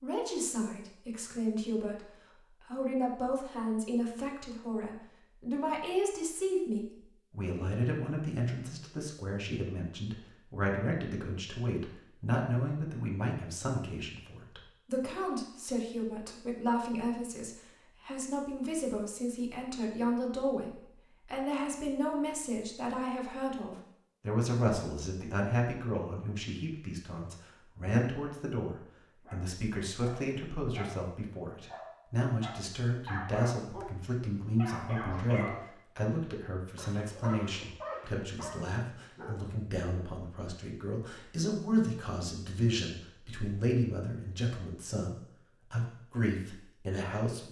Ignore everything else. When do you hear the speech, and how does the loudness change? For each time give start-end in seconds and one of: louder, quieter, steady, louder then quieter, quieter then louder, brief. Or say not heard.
0.0-47.4 steady.